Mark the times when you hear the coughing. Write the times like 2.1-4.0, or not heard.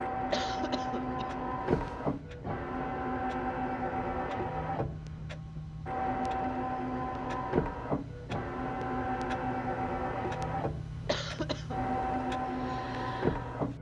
0.3-2.1, 11.1-11.8.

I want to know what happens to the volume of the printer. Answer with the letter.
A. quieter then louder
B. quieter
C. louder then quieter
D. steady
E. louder
D.